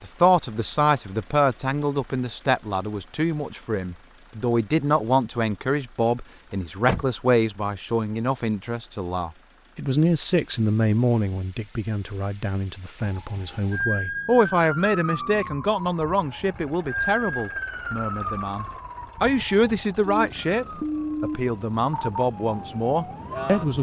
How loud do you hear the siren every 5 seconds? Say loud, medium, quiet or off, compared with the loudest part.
off, off, loud, loud, loud.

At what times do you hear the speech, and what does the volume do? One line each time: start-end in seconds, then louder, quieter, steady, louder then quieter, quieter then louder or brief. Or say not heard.
0.0-23.7 steady.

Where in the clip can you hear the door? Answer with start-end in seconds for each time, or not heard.
6.5-7.1.